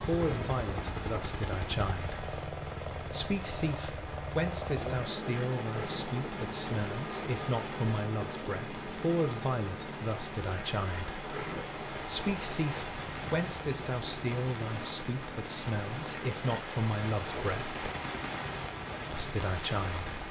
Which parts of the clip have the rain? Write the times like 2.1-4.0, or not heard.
0.0-20.2.